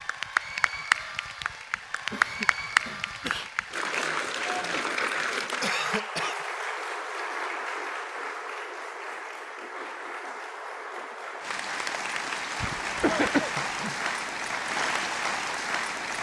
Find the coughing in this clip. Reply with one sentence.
The coughing can be heard from 2.1 to 3.5 s, from 5.6 to 6.4 s and from 12.6 to 13.9 s.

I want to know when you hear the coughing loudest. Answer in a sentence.
The loudest moment of the coughing is at 13 seconds.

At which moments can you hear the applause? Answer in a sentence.
You can hear the applause from 0.0 to 16.1 s.